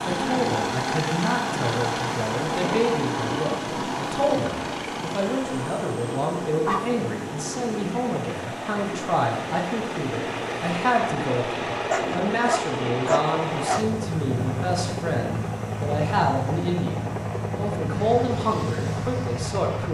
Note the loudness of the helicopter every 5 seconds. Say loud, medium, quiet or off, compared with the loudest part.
loud, medium, loud, loud.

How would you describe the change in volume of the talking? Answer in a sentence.
The loudness of the talking stays about the same.